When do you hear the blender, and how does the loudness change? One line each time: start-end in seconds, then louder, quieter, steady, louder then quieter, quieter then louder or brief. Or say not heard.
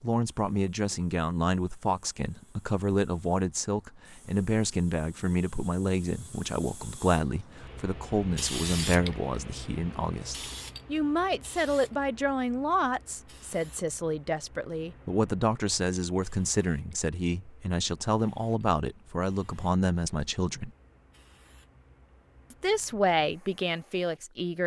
not heard.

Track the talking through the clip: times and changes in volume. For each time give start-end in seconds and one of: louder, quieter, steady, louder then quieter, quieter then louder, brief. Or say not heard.
0.0-20.7 steady
22.5-24.6 brief.